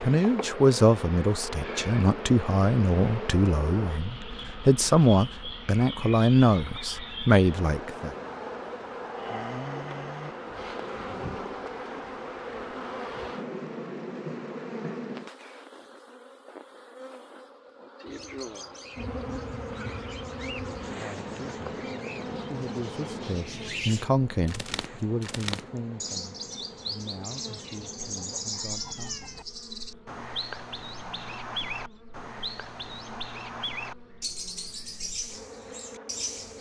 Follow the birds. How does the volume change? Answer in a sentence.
The volume of the birds goes up.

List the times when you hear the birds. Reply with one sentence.
The birds can be heard from 18.1 to 36.5 s.